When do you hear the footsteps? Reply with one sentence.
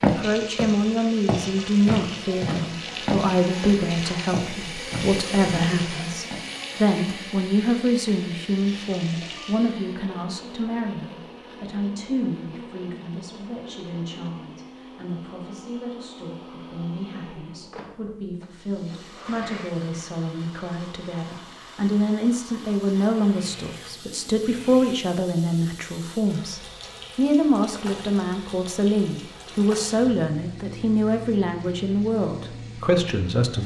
You can hear the footsteps from 0.0 to 6.4 s.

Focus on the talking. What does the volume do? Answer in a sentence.
The loudness of the talking goes down, then up.